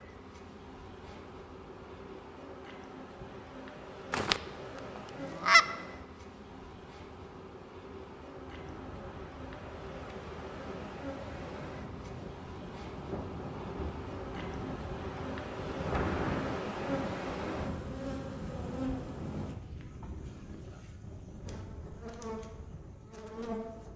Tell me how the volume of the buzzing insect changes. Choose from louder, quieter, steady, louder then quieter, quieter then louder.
louder then quieter.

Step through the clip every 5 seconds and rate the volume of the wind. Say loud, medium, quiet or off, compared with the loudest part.
quiet, quiet, medium, loud, medium.